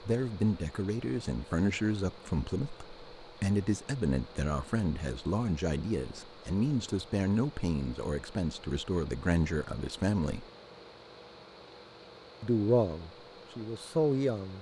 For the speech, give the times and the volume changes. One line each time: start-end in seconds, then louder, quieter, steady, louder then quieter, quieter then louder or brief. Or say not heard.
0.0-10.4 steady
12.4-14.5 brief.